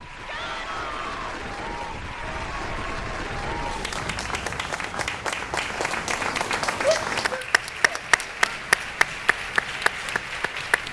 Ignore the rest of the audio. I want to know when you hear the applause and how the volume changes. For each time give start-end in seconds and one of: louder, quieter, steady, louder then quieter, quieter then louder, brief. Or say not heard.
0.0-10.8 louder.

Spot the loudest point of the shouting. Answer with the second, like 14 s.
7 s.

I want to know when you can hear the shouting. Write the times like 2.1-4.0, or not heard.
0.2-1.4, 6.8-8.6.